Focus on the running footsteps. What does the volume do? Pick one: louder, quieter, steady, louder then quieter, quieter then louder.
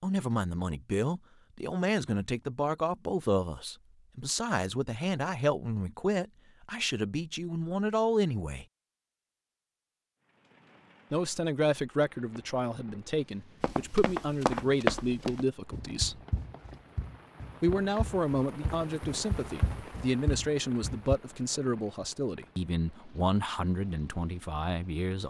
quieter then louder.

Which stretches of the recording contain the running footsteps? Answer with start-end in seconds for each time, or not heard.
13.6-21.1.